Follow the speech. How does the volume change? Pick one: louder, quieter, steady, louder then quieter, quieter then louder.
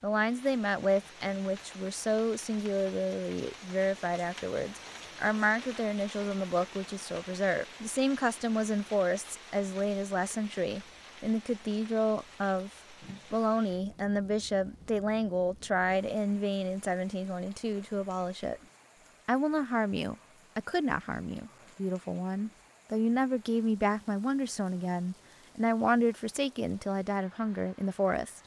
steady.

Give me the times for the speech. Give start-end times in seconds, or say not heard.
0.0-12.7, 13.3-18.6, 19.2-28.4.